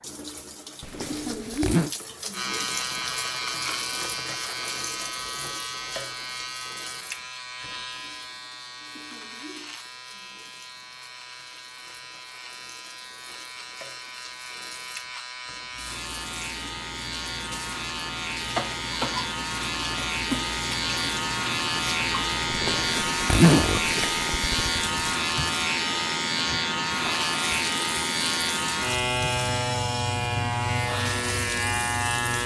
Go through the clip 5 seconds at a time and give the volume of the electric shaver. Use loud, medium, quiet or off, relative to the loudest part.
medium, medium, quiet, medium, loud, loud, loud.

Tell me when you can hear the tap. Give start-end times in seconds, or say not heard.
0.0-32.4.